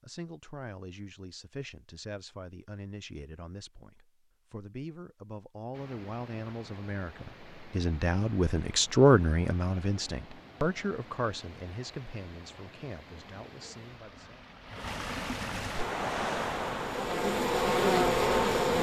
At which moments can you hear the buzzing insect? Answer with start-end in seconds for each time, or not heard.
15.7-18.7.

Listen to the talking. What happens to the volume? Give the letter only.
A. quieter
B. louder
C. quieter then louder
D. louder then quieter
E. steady
D.